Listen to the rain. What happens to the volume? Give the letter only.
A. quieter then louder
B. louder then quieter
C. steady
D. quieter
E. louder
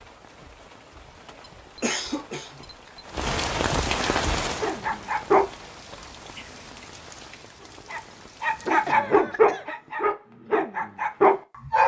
B.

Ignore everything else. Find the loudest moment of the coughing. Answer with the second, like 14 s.
2 s.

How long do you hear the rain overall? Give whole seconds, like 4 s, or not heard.
9 s.